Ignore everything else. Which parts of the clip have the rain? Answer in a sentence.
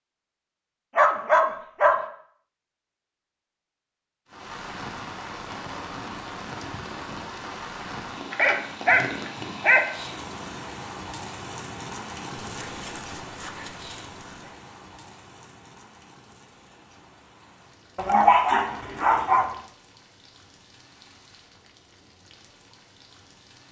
You can hear the rain from 4.2 to 23.6 s.